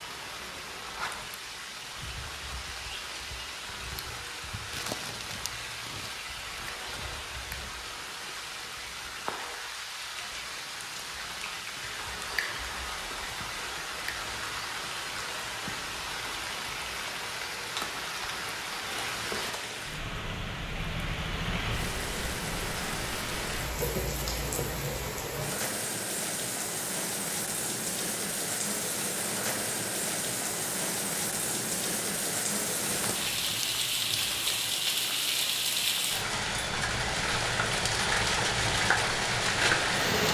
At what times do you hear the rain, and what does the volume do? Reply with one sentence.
You can hear the rain from 0.0 to 40.2 s, getting louder.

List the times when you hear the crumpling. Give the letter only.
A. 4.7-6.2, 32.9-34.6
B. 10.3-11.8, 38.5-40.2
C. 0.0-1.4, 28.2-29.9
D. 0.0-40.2
A.